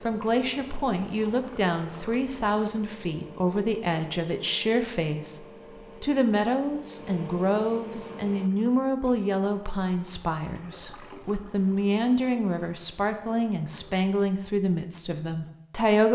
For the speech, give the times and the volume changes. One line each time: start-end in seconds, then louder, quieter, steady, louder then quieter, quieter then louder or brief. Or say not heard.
0.0-16.1 steady.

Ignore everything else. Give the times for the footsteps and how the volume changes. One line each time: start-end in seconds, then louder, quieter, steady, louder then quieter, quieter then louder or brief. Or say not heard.
not heard.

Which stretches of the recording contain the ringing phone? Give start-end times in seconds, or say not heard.
not heard.